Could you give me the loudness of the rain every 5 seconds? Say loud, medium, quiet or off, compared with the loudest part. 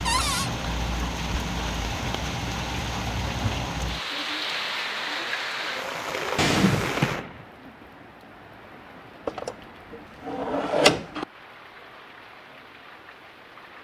loud, loud, quiet.